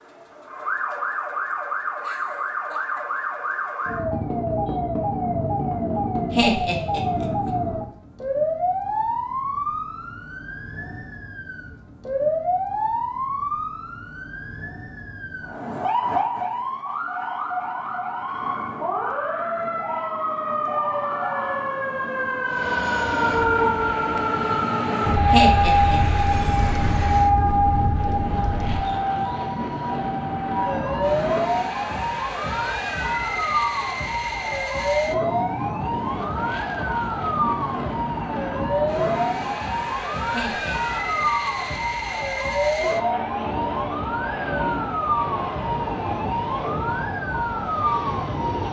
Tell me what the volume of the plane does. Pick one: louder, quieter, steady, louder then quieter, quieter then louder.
steady.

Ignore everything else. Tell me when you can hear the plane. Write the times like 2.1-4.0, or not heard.
22.4-48.6.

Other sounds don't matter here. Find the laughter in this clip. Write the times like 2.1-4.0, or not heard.
6.3-7.5, 25.3-26.2, 40.3-41.5.